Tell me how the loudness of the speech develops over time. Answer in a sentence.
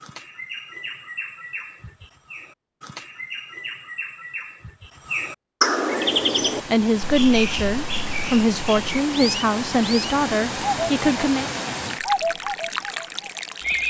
The loudness of the speech stays about the same.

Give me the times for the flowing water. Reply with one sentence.
The flowing water can be heard from 5.8 to 13.8 s.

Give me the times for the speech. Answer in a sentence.
The speech can be heard from 6.7 to 11.5 s.